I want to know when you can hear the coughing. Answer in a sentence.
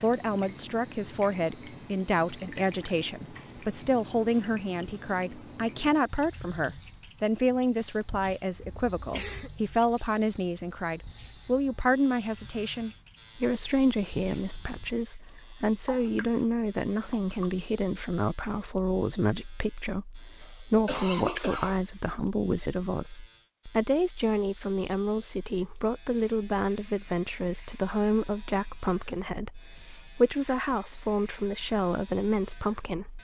The coughing can be heard from 8.6 to 9.5 s and from 20.4 to 21.8 s.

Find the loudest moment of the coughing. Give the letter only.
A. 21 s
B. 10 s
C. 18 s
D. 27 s
A.